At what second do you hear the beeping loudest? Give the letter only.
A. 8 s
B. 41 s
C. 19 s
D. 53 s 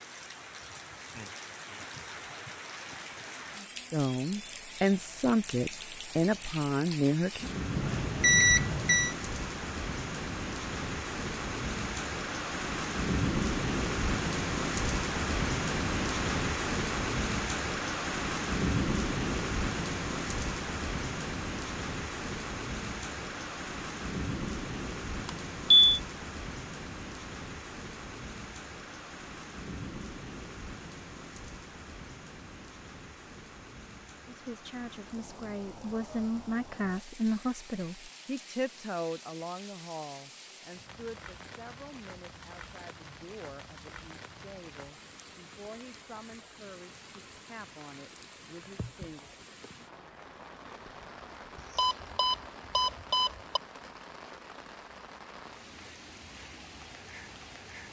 A.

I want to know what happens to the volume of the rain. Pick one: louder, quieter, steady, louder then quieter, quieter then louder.
louder then quieter.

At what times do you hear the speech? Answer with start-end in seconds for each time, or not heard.
3.9-7.5, 34.2-49.3.